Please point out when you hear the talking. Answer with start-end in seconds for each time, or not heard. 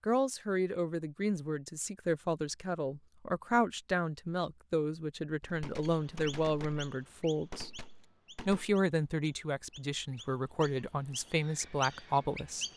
0.0-7.7, 8.4-12.7.